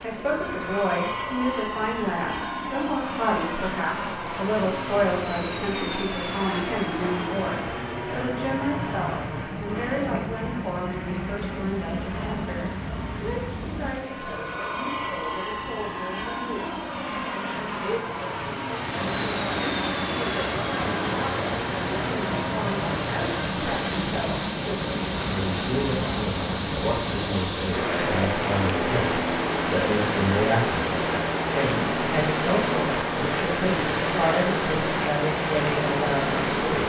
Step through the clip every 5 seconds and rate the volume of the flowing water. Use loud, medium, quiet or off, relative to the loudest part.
quiet, quiet, quiet, medium, loud, loud, loud, loud.